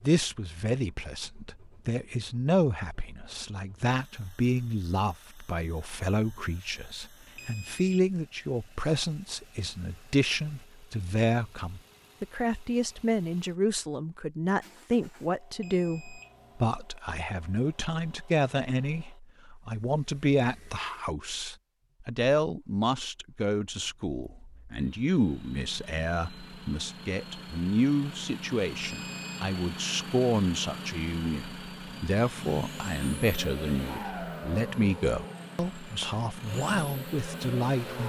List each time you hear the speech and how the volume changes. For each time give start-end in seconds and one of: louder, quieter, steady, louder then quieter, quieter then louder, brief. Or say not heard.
0.0-38.0 steady.